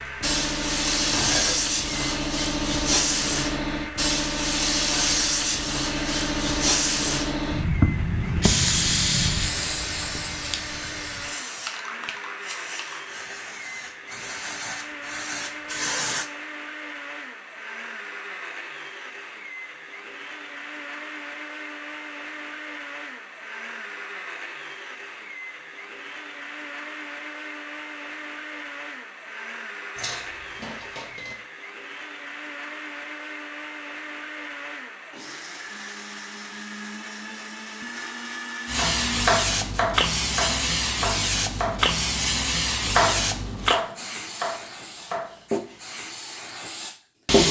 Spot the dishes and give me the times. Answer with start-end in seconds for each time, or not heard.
0.9-1.7, 29.9-31.4.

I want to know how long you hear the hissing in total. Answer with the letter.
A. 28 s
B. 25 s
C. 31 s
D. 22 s
B.